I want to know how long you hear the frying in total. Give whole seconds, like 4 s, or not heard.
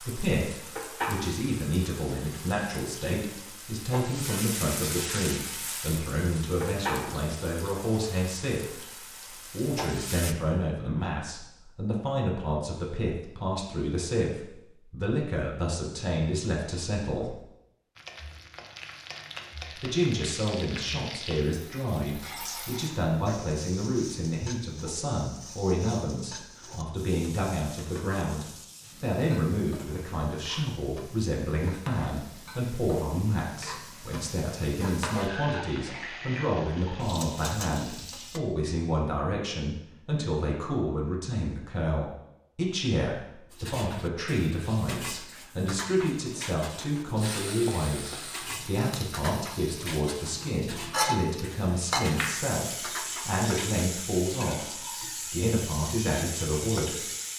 41 s.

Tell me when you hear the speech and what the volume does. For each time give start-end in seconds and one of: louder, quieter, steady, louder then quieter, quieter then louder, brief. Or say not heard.
0.0-8.8 steady
9.4-17.4 steady
19.8-57.0 steady.